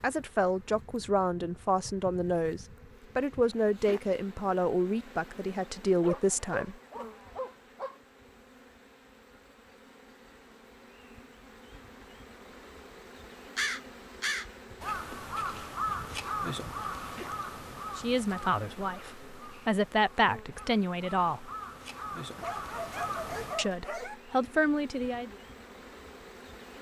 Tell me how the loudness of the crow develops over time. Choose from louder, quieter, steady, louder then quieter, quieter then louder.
quieter then louder.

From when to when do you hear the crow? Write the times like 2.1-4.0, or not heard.
13.6-23.7.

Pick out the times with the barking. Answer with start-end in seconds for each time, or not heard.
6.0-8.0, 22.4-24.2.